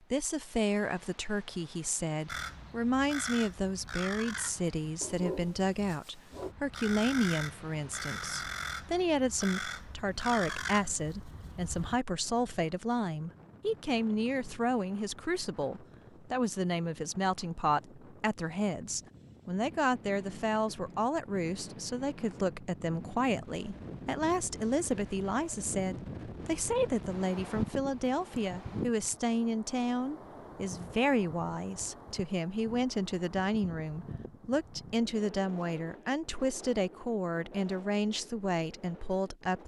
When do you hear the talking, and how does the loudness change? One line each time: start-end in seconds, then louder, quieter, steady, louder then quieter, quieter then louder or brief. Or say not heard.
0.1-39.6 steady.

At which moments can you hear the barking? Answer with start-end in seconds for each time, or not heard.
5.0-6.5.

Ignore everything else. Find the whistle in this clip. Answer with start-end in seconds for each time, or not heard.
not heard.